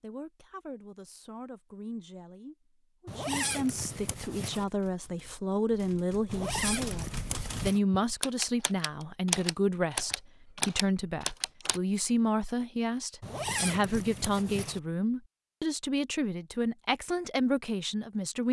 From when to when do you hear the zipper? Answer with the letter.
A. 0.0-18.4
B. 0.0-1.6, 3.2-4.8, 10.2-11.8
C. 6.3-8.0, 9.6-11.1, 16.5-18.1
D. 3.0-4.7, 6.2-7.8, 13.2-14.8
D.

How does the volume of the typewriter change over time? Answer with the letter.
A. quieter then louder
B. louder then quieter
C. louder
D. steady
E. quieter
C.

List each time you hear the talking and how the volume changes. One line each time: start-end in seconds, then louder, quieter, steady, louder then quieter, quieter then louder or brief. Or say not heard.
0.0-18.4 louder.